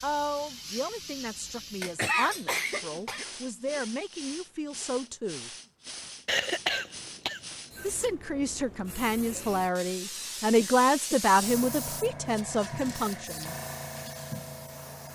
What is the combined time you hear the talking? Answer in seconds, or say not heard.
11 s.